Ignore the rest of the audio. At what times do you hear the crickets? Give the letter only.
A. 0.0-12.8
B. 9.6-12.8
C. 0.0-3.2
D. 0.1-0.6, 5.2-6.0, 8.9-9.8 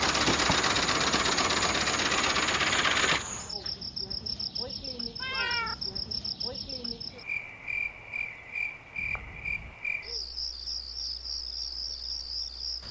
A.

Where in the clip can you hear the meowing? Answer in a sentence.
You can hear the meowing from 0.1 to 0.6 s, from 5.2 to 6.0 s and from 8.9 to 9.8 s.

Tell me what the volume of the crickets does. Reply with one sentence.
The volume of the crickets stays about the same.